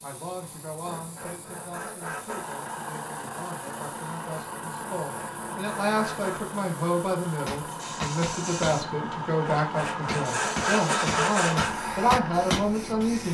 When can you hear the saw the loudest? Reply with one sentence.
The volume of the saw peaks at 11 seconds.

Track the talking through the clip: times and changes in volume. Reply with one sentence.
The talking can be heard from 0.0 to 13.2 s, getting louder.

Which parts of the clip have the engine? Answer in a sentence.
The engine can be heard from 2.3 to 13.2 s.